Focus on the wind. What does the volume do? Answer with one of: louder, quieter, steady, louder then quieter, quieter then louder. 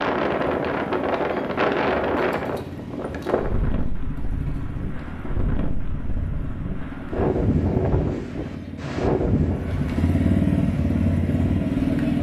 quieter then louder.